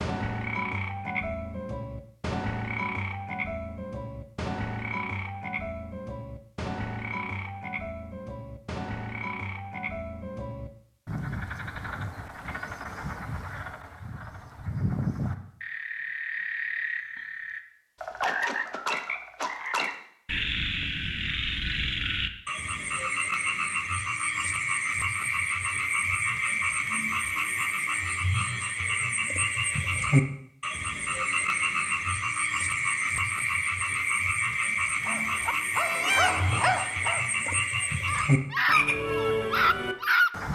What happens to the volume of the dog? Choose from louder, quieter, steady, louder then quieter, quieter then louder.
quieter then louder.